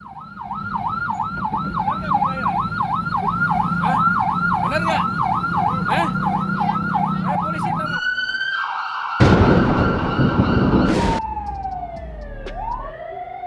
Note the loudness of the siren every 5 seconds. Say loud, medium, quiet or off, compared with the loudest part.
loud, loud, medium.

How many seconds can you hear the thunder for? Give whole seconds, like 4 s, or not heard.
2 s.